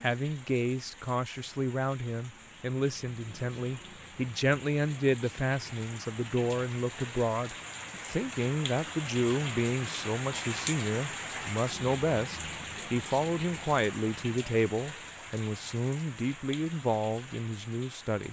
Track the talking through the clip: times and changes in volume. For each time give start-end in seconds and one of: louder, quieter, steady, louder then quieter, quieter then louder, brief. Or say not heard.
0.0-18.2 steady.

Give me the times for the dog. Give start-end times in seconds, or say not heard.
not heard.